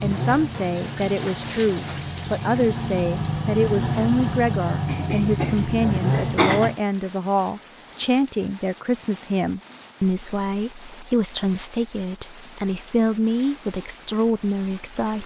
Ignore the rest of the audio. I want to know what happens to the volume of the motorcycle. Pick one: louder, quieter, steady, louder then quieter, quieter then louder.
louder.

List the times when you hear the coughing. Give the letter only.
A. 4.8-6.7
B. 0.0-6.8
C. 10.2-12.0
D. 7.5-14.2
A.